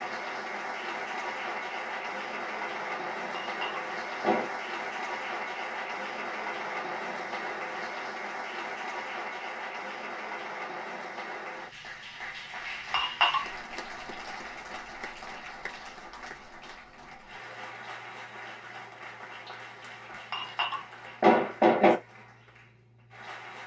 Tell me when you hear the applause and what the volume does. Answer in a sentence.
The applause can be heard from 0.0 to 23.6 s, getting quieter.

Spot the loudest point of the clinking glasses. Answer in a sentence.
The loudest moment of the clinking glasses is at 22 seconds.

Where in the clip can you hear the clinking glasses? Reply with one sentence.
The clinking glasses can be heard from 3.4 to 4.5 s, from 12.9 to 13.4 s and from 20.3 to 22.0 s.